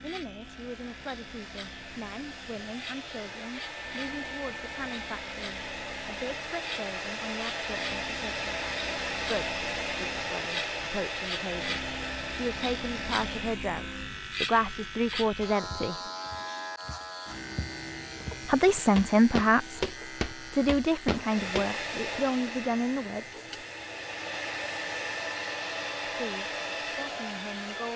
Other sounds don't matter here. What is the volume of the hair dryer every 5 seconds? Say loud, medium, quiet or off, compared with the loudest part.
medium, loud, loud, off, loud, loud.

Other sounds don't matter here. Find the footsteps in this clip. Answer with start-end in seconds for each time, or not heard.
15.6-21.7.